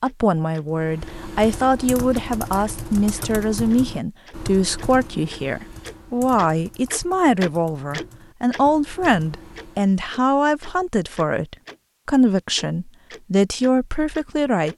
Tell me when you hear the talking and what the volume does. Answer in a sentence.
You can hear the talking from 0.0 to 14.7 s, at a steady volume.